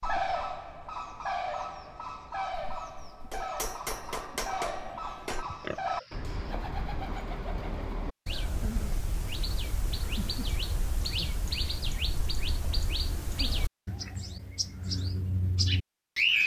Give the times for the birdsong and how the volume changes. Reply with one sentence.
You can hear the birdsong from 0.0 to 16.4 s, at a steady volume.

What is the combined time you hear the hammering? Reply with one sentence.
The hammering can be heard for 3 seconds in total.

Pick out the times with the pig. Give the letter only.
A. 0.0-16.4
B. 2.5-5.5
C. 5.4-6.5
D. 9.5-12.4
C.